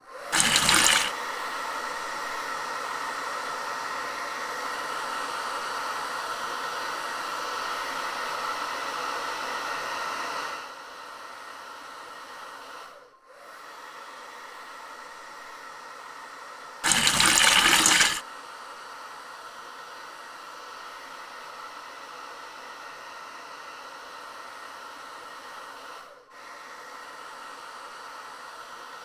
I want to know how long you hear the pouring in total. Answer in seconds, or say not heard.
2 s.